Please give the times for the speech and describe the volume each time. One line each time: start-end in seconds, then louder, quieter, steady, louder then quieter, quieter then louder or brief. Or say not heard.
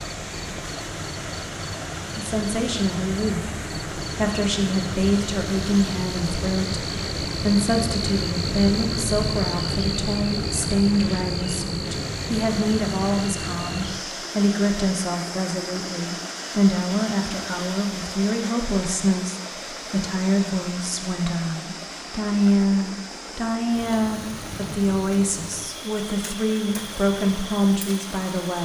2.1-28.6 steady.